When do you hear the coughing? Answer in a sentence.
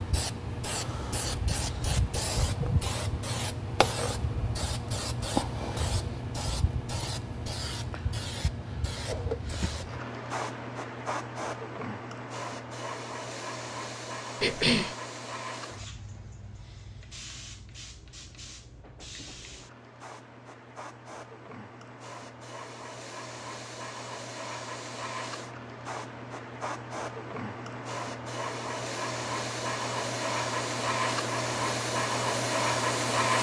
The coughing can be heard from 14.4 to 14.9 s.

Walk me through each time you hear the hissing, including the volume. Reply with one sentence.
You can hear the hissing from 0.0 to 33.3 s, getting quieter then louder.